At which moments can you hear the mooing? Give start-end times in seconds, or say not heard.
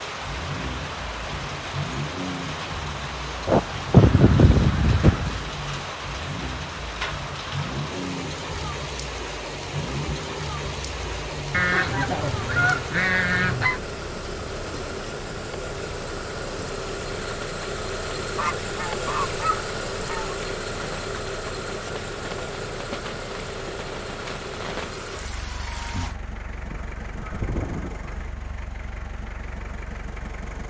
not heard.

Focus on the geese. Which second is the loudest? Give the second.
4 s.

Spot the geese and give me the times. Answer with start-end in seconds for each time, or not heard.
3.5-5.4, 11.5-13.8, 18.4-20.4, 26.7-28.1.